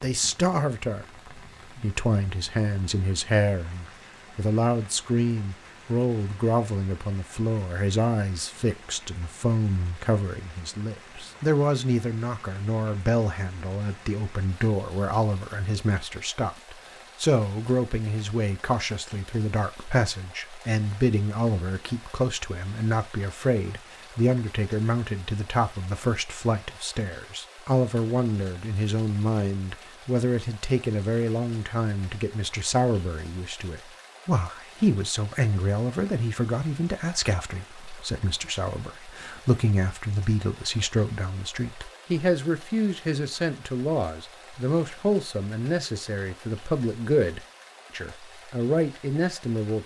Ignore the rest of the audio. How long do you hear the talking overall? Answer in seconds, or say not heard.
49 s.